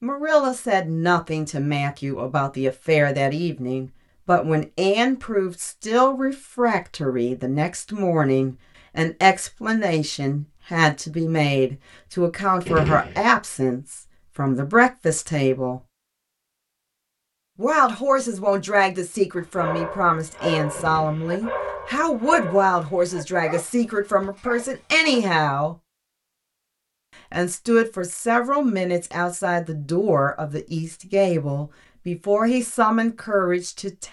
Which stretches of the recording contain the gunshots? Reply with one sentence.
The gunshots can be heard from 12.7 to 13.2 s and from 20.7 to 21.2 s.